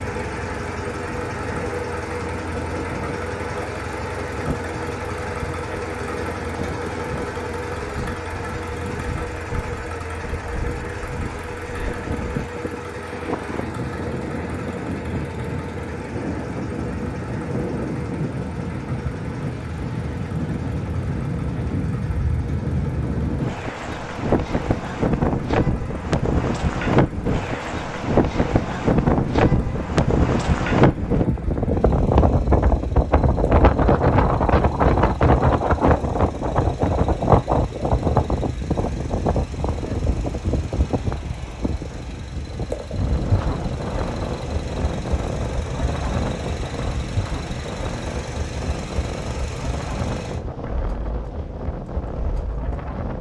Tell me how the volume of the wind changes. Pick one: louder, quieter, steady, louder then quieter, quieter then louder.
louder then quieter.